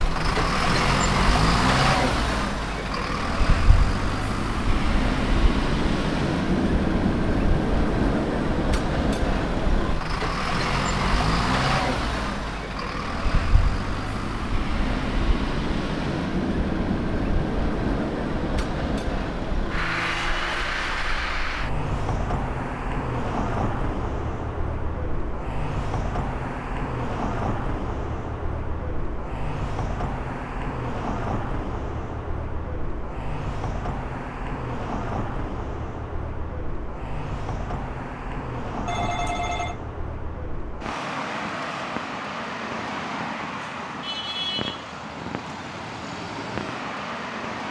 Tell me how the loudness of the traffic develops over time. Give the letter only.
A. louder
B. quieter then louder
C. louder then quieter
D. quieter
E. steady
D.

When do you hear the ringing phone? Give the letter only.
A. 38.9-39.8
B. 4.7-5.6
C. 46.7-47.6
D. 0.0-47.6
A.